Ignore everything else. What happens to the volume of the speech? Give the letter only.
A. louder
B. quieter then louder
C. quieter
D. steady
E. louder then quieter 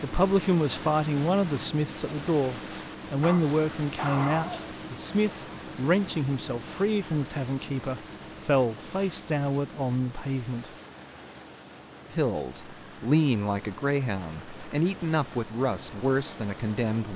D.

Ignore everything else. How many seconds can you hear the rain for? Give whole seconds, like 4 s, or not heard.
not heard.